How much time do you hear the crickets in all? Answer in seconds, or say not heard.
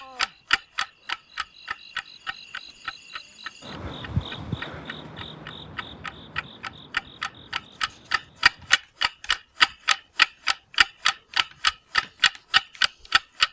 9 s.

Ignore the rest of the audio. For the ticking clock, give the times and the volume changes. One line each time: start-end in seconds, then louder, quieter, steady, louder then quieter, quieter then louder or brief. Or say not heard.
0.1-13.4 quieter then louder.